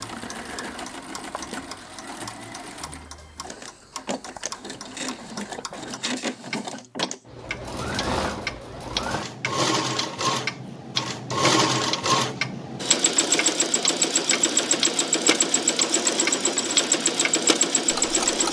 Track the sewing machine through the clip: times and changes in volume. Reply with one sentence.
The sewing machine can be heard from 0.0 to 18.4 s, getting louder.